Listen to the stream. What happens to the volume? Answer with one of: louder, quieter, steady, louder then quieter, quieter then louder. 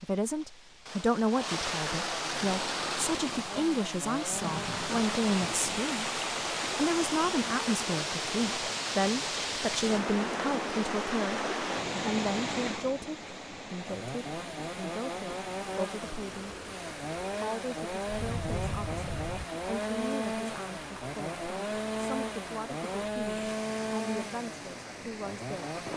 quieter.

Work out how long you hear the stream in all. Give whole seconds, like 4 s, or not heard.
26 s.